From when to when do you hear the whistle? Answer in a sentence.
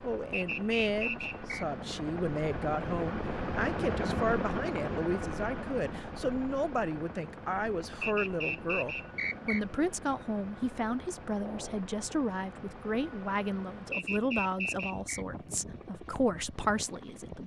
You can hear the whistle from 0.3 to 1.6 s, from 8.0 to 9.6 s and from 13.9 to 15.2 s.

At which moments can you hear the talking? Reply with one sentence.
The talking can be heard from 0.0 to 17.4 s.